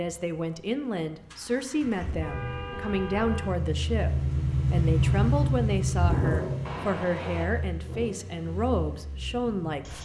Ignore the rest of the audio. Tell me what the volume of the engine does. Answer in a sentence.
The loudness of the engine goes up, then down.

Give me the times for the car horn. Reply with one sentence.
The car horn can be heard from 1.8 to 3.5 s and from 6.7 to 7.5 s.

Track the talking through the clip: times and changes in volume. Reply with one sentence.
The talking can be heard from 0.0 to 10.0 s, at a steady volume.